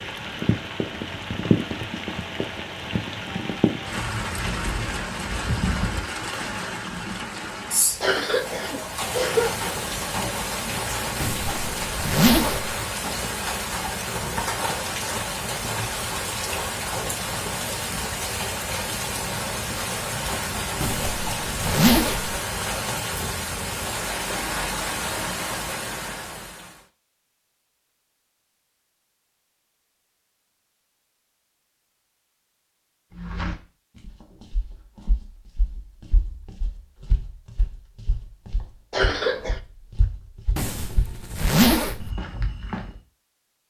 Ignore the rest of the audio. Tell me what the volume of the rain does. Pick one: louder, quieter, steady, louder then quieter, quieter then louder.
steady.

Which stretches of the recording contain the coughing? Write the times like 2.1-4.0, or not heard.
8.0-9.6, 38.9-39.6.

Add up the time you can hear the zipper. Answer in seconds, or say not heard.
5 s.